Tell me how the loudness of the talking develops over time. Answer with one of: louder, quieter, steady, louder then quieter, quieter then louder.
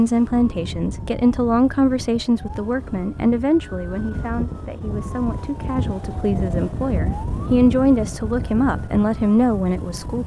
quieter then louder.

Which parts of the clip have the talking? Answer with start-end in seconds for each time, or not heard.
0.0-10.2.